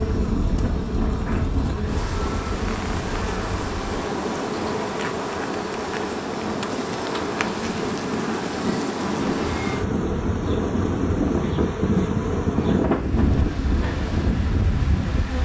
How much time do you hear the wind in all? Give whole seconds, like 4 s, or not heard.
15 s.